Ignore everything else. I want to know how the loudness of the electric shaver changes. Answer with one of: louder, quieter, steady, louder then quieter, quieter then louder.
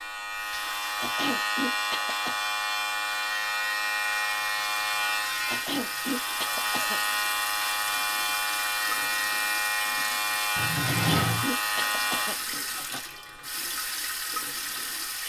quieter.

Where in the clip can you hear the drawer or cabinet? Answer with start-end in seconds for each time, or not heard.
10.6-11.4.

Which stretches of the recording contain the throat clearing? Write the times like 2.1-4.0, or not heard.
0.9-2.4, 5.5-7.0, 10.8-13.0.